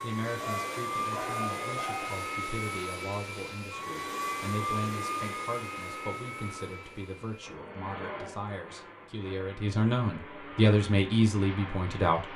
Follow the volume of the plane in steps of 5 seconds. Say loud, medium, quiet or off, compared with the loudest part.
loud, medium, medium.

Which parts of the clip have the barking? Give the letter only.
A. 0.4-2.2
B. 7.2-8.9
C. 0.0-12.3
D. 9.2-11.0
A.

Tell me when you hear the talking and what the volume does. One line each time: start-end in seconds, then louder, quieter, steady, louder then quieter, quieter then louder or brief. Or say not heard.
0.0-12.3 louder.